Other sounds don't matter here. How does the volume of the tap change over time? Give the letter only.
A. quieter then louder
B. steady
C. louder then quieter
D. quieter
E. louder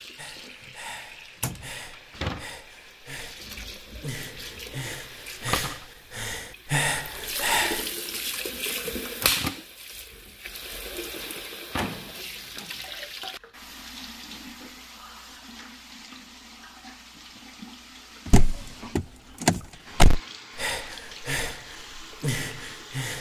C.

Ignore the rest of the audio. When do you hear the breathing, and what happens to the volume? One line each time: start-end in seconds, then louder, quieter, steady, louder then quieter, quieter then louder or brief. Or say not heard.
0.1-7.8 louder
20.6-23.1 brief.